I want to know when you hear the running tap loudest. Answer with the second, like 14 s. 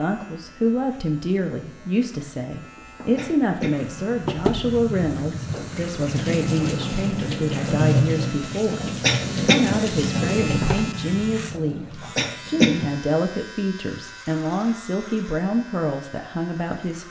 8 s.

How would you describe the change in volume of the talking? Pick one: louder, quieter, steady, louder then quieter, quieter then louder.
steady.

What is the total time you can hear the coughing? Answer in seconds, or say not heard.
2 s.